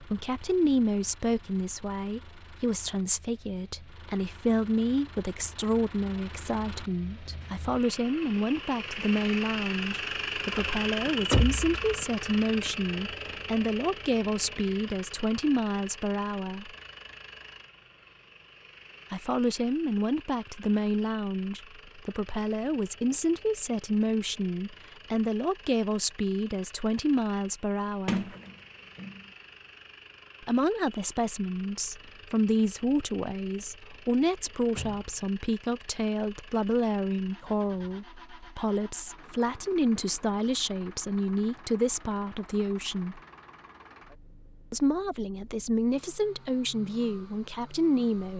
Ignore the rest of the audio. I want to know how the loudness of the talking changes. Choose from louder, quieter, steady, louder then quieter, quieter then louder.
steady.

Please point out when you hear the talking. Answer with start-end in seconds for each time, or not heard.
0.0-16.7, 19.1-28.2, 30.4-43.2, 44.7-48.3.